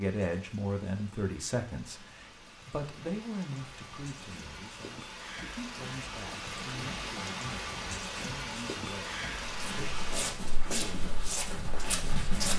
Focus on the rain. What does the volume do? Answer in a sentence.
The loudness of the rain goes up.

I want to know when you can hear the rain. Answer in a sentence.
The rain can be heard from 0.0 to 10.3 s.